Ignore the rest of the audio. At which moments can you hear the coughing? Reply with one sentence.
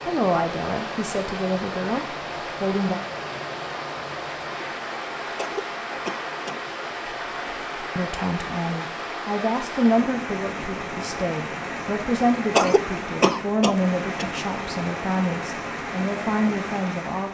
You can hear the coughing from 5.3 to 6.6 s and from 12.5 to 14.2 s.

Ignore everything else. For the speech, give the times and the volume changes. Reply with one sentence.
You can hear the speech briefly from 0.1 to 3.0 s; and from 7.8 to 17.2 s, at a steady volume.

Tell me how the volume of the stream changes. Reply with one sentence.
The loudness of the stream stays about the same.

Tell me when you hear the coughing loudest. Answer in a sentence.
The volume of the coughing peaks at 13 seconds.